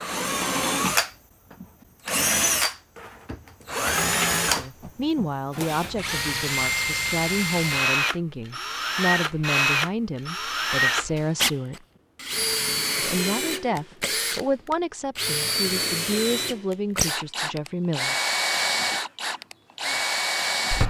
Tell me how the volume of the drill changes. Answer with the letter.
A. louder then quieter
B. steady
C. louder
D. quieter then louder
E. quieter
B.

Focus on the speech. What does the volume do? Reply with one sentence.
The loudness of the speech stays about the same.